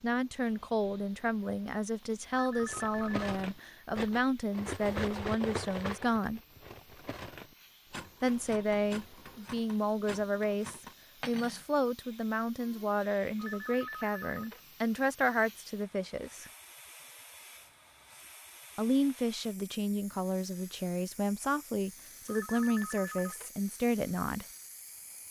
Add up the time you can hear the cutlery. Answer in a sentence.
The cutlery can be heard for 9 seconds in total.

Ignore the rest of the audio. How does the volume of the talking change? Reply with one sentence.
The loudness of the talking stays about the same.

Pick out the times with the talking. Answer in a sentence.
The talking can be heard from 0.0 to 6.4 s, from 8.2 to 16.5 s and from 18.8 to 24.4 s.